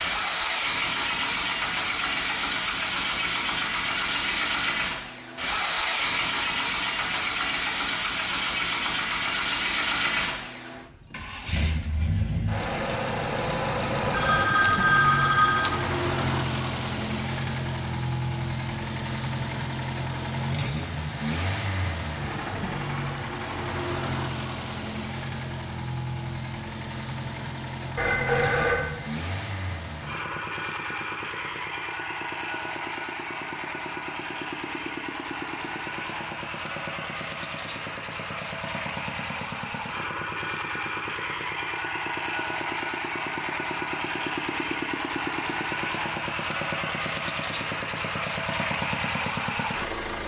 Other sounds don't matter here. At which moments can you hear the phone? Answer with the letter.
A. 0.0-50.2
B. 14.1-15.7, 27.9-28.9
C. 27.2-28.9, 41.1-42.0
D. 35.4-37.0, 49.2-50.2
B.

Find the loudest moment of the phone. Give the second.
15 s.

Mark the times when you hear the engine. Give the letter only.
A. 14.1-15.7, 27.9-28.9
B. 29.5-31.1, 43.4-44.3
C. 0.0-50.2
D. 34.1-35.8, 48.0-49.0
C.